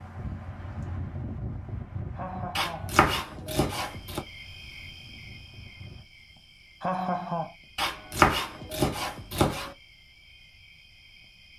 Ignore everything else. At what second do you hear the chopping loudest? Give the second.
8 s.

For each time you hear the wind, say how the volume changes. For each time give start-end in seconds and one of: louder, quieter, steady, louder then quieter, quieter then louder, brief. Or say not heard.
0.0-6.0 quieter.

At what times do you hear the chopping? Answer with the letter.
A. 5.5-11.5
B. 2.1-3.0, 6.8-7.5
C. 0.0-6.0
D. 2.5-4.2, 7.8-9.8
D.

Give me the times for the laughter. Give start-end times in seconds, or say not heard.
2.1-3.0, 6.8-7.5.